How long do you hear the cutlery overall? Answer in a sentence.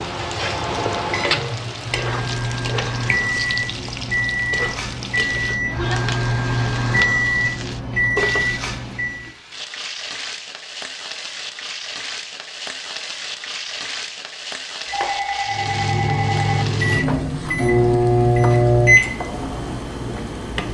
You can't hear the cutlery here.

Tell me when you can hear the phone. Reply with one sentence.
The phone can be heard from 14.8 to 16.6 s.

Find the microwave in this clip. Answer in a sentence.
The microwave can be heard from 0.0 to 9.3 s and from 15.4 to 20.6 s.